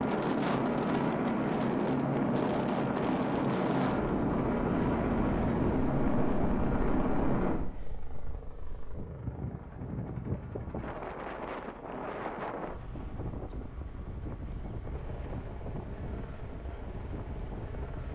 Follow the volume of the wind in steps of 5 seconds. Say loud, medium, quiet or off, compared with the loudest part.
loud, loud, loud, medium.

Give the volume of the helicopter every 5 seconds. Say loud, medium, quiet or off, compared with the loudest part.
loud, loud, quiet, quiet.